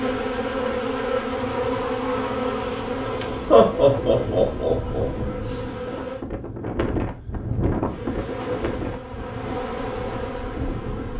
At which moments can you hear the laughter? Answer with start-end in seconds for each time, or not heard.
3.5-5.0.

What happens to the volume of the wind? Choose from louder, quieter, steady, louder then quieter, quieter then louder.
louder then quieter.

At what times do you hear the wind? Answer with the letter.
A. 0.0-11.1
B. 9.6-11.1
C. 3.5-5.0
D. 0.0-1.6
A.